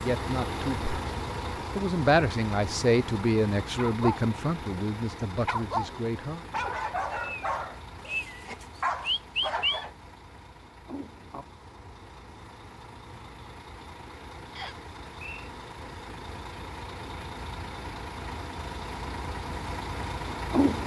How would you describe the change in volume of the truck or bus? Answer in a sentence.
The loudness of the truck or bus goes down, then up.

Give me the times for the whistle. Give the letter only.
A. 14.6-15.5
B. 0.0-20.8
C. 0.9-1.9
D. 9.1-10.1
A.